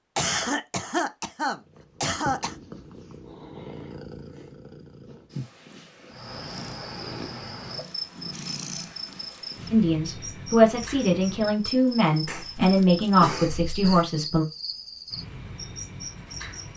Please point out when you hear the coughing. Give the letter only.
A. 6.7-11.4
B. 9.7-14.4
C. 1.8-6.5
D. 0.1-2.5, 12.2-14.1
D.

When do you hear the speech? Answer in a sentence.
You can hear the speech from 9.7 to 14.4 s.